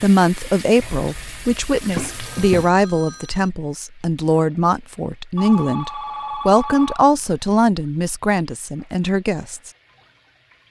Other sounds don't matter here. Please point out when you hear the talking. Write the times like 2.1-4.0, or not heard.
0.0-9.7.